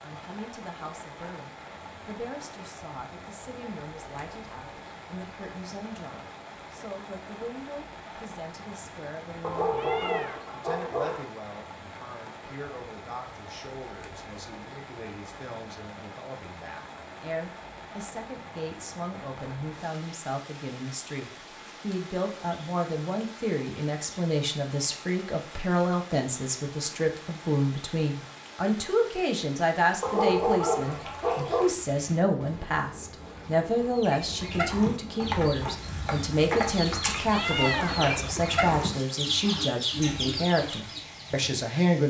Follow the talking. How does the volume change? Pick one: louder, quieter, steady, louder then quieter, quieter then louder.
louder.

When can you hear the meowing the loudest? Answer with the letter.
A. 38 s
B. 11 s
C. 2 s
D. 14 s
A.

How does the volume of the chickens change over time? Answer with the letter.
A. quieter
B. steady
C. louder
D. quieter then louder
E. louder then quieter
B.